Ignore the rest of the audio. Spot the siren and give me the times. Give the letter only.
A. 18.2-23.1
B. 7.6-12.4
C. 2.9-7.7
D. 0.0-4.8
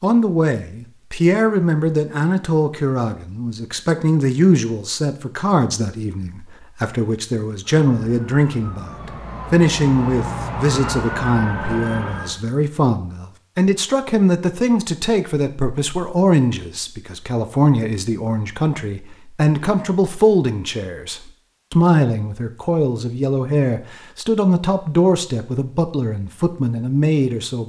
B.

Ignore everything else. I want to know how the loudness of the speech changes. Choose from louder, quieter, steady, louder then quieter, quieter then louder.
steady.